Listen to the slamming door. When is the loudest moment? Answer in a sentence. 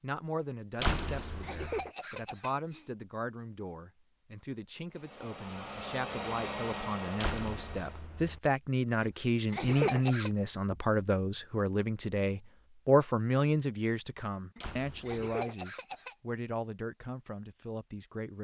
The volume of the slamming door peaks at 1 second.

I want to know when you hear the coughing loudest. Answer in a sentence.
The volume of the coughing peaks at 10 seconds.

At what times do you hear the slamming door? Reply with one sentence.
The slamming door can be heard from 0.8 to 1.9 s, from 7.2 to 8.4 s and from 14.6 to 15.2 s.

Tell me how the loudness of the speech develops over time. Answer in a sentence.
The loudness of the speech goes up, then down.